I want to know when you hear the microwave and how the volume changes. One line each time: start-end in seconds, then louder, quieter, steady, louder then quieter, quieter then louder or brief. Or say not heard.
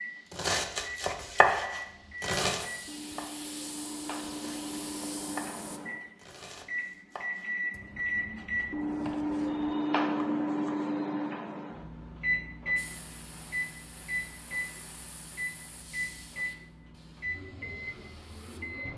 0.0-18.9 louder then quieter.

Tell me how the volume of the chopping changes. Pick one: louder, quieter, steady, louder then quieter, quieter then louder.
quieter.